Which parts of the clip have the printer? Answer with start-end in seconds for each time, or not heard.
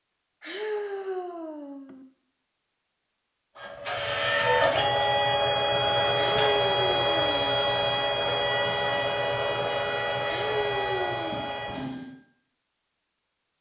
3.5-12.2.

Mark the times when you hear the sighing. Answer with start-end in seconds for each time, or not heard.
0.4-2.0, 6.2-7.6, 10.2-11.6.